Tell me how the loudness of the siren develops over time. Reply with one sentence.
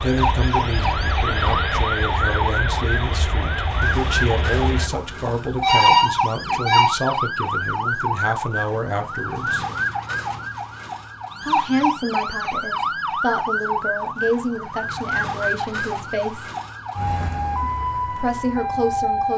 The loudness of the siren stays about the same.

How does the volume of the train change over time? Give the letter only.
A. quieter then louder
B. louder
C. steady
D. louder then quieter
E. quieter
C.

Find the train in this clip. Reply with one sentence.
The train can be heard from 0.0 to 4.9 s.